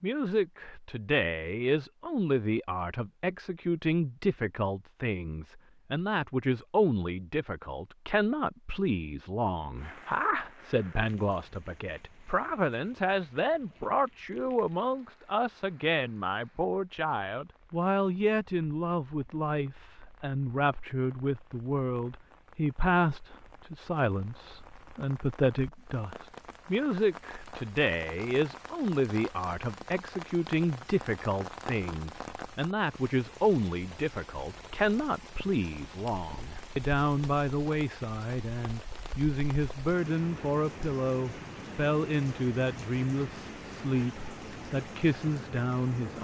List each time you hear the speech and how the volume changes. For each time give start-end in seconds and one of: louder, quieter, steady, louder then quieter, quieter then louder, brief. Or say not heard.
0.0-46.1 steady.